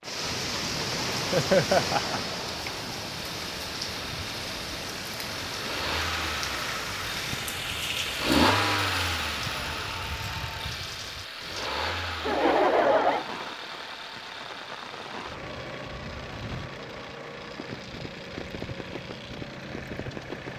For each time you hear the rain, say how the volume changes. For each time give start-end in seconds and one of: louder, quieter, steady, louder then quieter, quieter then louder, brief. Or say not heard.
0.0-20.5 quieter.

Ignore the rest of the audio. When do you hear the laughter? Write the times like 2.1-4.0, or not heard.
1.3-2.2, 12.2-13.2.